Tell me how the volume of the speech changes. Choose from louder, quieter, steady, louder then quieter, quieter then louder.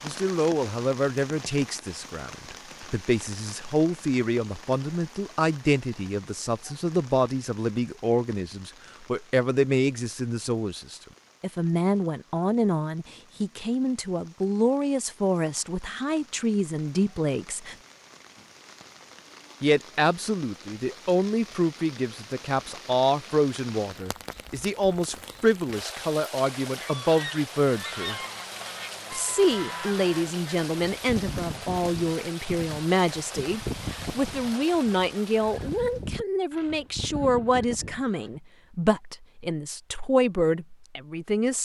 steady.